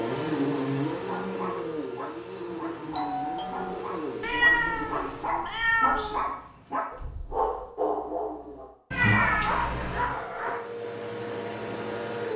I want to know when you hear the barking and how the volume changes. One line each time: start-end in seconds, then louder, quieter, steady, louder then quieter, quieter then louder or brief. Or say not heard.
1.1-10.9 louder.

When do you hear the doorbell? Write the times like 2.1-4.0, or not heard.
3.0-3.9.